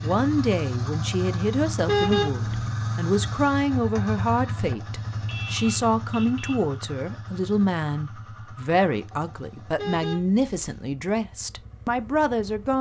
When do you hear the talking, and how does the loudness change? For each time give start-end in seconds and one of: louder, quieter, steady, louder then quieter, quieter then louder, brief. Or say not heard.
0.0-12.7 steady.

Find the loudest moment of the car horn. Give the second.
2 s.